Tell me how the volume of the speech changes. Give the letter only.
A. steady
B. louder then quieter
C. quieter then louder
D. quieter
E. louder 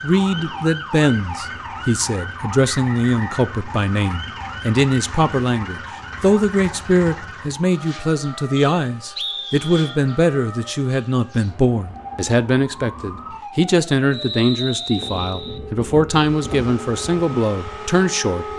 A.